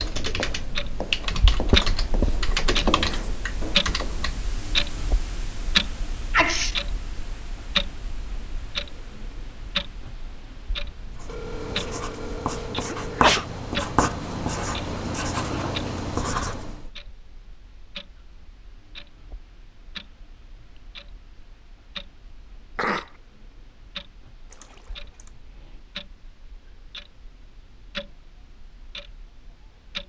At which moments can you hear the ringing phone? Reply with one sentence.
You can hear the ringing phone from 10.8 to 13.2 s and from 24.5 to 25.3 s.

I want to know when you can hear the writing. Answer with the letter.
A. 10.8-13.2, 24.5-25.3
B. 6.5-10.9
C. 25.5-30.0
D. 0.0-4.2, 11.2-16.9
D.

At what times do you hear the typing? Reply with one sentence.
The typing can be heard from 0.0 to 4.5 s.